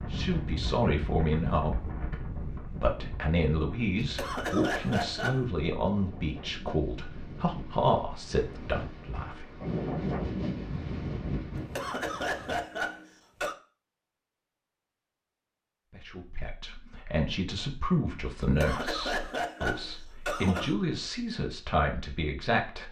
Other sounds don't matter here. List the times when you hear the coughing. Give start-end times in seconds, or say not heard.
4.0-5.5, 11.6-13.6, 18.4-20.8.